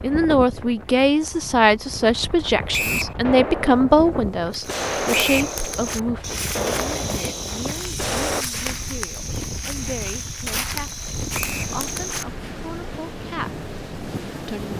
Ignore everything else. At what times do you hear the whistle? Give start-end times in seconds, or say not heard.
2.7-3.1, 5.1-5.5, 11.3-11.8.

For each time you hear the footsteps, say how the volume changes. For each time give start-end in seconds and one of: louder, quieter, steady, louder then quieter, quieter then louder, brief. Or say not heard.
4.5-12.5 steady.